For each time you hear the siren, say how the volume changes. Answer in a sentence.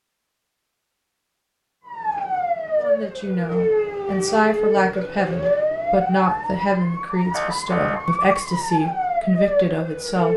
You can hear the siren from 1.9 to 10.3 s, at a steady volume.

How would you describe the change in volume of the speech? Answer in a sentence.
The loudness of the speech stays about the same.